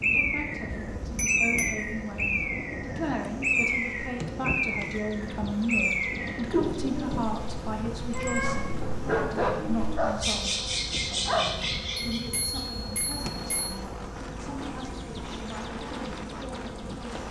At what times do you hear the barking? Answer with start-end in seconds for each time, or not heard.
8.8-11.4.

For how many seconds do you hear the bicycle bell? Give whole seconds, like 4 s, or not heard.
3 s.